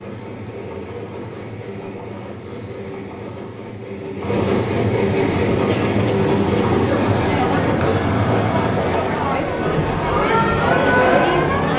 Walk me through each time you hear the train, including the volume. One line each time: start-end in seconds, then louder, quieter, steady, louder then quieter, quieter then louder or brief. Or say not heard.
0.0-11.7 louder then quieter.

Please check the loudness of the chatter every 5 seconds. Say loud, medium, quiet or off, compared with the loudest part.
off, medium, loud.